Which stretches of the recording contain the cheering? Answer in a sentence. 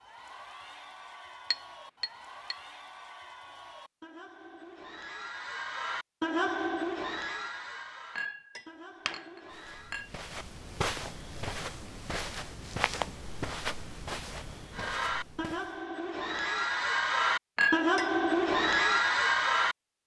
You can hear the cheering from 0.0 to 10.1 s and from 14.7 to 19.8 s.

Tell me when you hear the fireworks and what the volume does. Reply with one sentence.
You can't hear the fireworks here.